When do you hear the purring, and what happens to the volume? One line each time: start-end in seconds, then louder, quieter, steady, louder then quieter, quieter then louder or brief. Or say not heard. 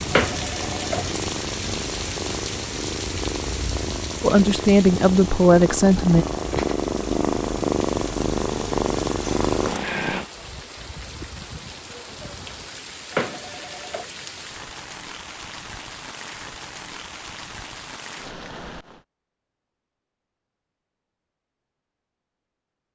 0.0-10.2 louder.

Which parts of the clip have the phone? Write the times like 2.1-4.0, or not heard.
0.1-1.1, 13.1-14.1.